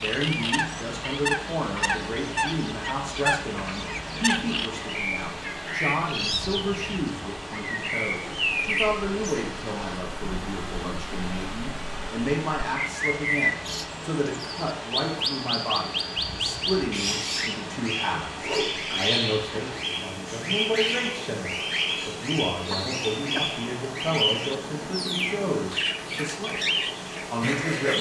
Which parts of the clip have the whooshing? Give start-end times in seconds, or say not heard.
18.4-18.9.